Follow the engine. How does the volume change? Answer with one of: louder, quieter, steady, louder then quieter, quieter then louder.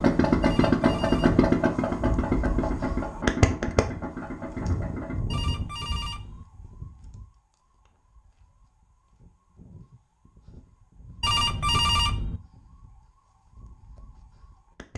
quieter.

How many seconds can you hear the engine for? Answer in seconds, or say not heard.
5 s.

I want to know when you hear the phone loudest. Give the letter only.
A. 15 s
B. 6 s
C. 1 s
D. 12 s
D.